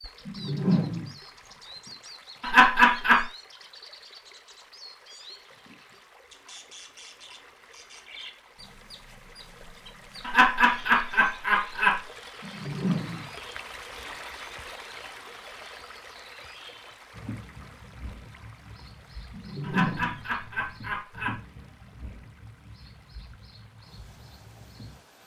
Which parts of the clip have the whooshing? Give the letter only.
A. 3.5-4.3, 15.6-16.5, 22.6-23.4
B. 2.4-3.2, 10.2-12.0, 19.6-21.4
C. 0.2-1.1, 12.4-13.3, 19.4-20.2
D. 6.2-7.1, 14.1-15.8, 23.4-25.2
C.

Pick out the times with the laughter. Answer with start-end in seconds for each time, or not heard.
2.4-3.2, 10.2-12.0, 19.6-21.4.